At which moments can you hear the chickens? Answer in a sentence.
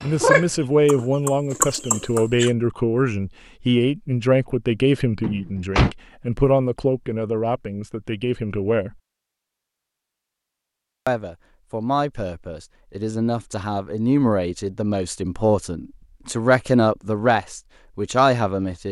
You can hear the chickens from 0.0 to 2.5 s.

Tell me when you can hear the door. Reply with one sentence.
The door can be heard from 5.2 to 6.0 s.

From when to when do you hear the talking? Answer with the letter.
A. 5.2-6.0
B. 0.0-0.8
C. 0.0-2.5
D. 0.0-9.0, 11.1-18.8
D.